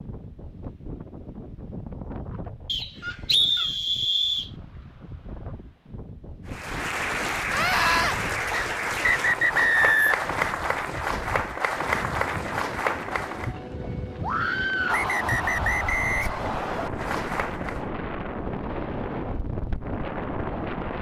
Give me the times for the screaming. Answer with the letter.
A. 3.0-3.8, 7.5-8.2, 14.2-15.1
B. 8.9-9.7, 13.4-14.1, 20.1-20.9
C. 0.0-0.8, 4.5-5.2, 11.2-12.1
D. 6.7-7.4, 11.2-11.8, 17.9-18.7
A.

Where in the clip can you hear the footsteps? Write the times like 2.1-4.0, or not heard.
not heard.